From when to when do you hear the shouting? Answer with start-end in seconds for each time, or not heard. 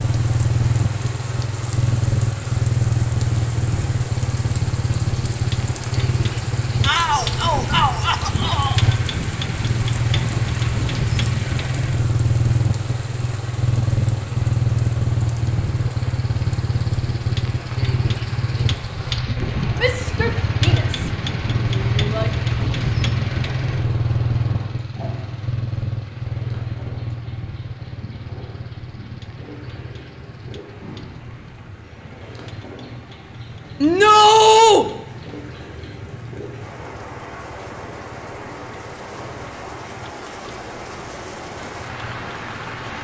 6.8-8.8, 19.8-21.1, 21.7-22.3, 33.8-34.9.